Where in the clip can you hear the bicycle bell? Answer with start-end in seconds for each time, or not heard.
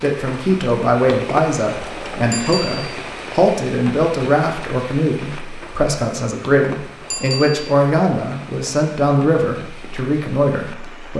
2.3-2.9, 7.1-7.8.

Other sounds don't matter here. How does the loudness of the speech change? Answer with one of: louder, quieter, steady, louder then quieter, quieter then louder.
steady.